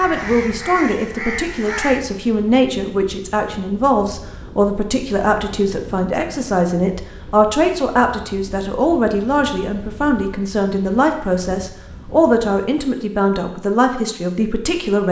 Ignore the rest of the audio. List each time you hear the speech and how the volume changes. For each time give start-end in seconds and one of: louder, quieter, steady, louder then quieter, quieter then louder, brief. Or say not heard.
0.0-15.0 steady.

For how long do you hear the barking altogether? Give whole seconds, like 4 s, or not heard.
not heard.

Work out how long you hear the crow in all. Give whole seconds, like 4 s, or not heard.
2 s.